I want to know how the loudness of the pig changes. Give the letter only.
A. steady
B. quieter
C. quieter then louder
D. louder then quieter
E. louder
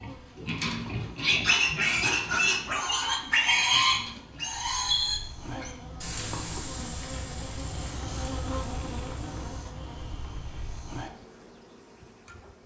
B.